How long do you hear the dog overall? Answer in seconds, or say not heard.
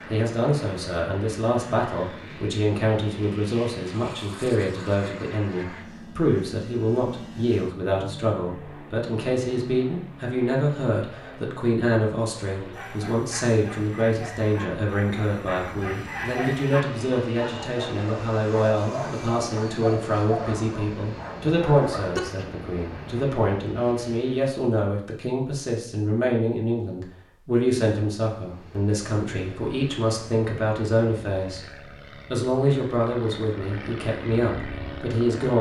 10 s.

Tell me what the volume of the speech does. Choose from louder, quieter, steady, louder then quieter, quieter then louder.
steady.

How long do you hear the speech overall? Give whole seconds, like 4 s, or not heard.
35 s.